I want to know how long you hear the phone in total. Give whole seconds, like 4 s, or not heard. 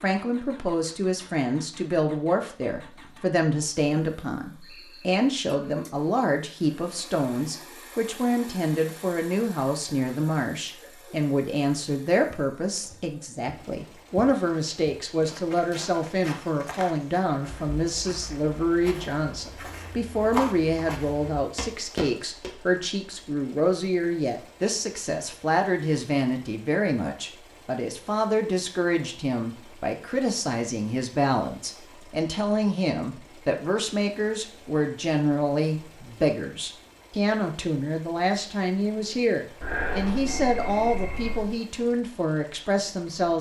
2 s.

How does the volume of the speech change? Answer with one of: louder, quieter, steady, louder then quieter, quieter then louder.
steady.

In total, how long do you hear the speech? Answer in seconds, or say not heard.
43 s.